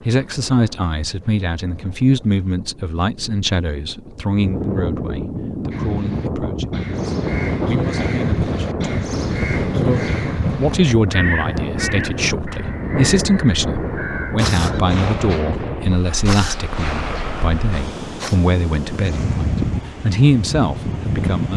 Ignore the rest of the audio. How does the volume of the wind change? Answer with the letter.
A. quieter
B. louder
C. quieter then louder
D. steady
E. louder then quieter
B.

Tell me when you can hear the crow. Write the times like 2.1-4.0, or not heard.
5.7-14.8.